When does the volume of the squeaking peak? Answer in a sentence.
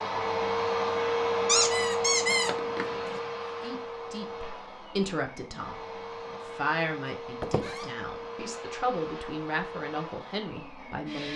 The volume of the squeaking peaks at 2 seconds.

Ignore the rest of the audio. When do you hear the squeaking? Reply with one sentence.
The squeaking can be heard from 1.4 to 3.2 s and from 7.4 to 7.8 s.